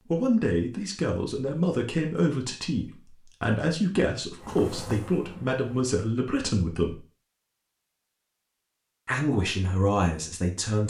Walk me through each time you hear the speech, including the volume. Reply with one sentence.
The speech can be heard from 0.1 to 7.0 s, at a steady volume; and briefly from 9.1 to 10.8 s.